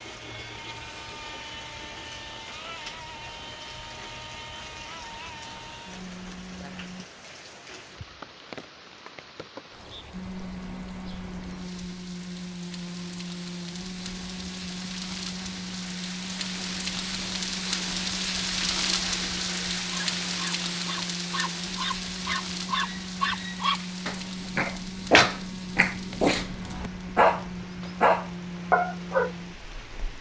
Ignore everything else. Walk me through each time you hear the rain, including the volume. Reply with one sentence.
The rain can be heard from 0.0 to 30.1 s, getting louder then quieter.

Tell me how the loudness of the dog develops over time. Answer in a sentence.
The volume of the dog goes up.